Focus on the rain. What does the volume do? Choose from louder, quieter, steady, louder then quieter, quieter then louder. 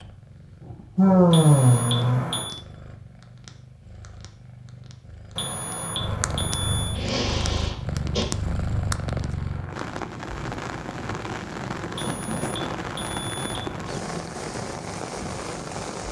louder.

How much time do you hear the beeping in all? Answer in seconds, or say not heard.
5 s.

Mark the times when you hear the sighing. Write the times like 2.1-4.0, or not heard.
0.9-2.4, 7.0-8.2, 11.9-12.8.